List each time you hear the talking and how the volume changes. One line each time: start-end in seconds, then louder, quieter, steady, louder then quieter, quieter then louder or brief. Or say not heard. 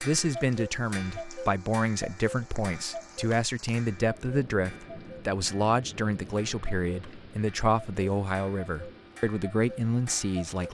0.0-10.6 steady.